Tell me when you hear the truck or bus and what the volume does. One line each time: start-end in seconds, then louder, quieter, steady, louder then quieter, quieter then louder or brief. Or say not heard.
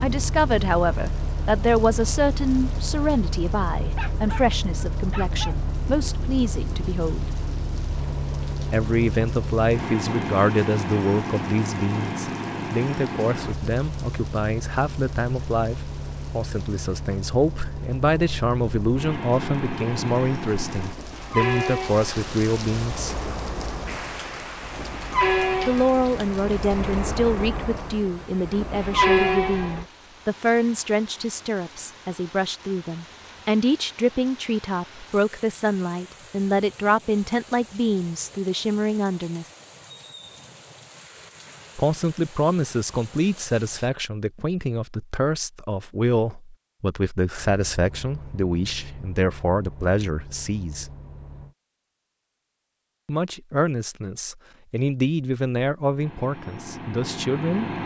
0.0-29.9 louder
47.4-51.5 steady
56.0-57.8 brief.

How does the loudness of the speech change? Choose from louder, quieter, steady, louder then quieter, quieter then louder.
steady.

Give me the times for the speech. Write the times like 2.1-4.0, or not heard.
0.0-7.2, 8.7-23.2, 25.6-39.5, 41.8-50.9, 53.0-57.7.